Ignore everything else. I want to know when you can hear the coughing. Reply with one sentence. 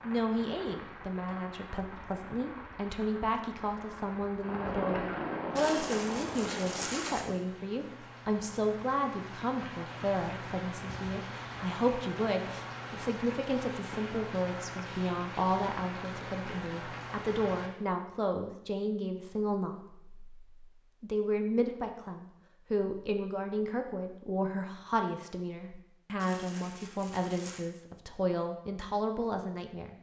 The coughing can't be heard in this clip.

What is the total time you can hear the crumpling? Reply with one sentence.
You can hear the crumpling for 3 seconds altogether.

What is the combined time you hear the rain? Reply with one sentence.
You can hear the rain for 18 seconds altogether.